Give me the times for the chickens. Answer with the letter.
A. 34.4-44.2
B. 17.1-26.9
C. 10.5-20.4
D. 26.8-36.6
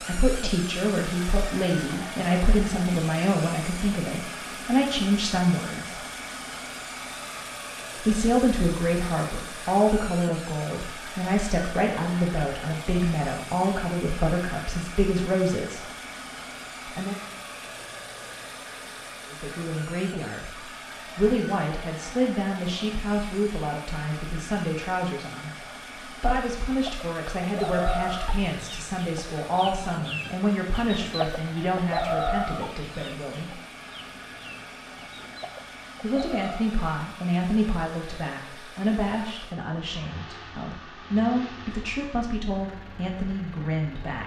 D.